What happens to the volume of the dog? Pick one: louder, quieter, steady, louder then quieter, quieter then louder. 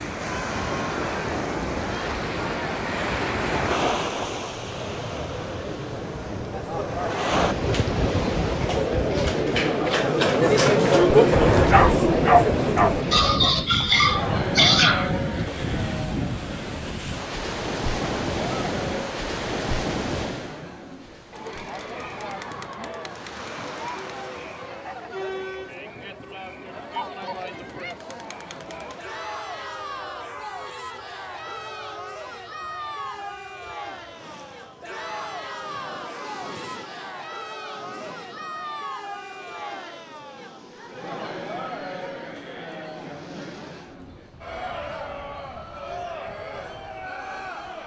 louder.